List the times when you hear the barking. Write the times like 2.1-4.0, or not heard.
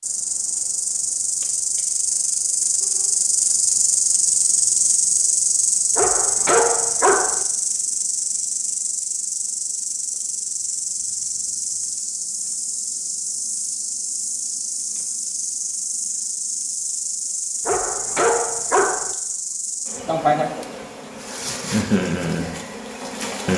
6.0-7.5, 17.6-19.1.